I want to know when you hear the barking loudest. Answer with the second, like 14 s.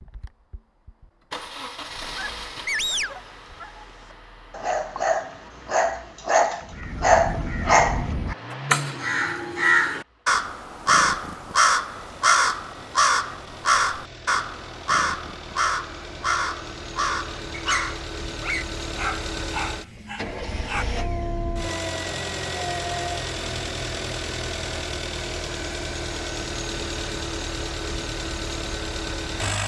7 s.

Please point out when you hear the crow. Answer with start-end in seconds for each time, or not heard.
6.6-18.1.